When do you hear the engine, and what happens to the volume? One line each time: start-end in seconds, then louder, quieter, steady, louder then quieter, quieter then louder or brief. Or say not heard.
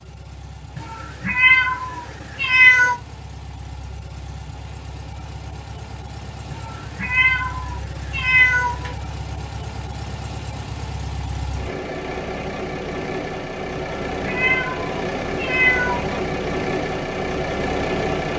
0.0-18.3 louder.